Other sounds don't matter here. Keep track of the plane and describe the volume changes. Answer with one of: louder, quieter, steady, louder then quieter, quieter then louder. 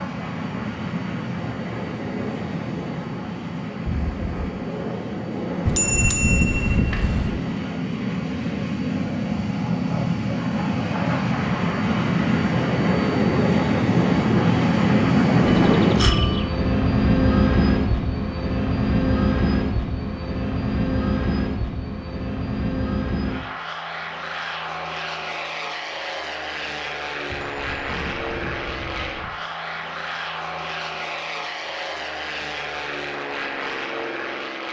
louder then quieter.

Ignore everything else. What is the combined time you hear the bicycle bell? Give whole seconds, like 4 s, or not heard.
5 s.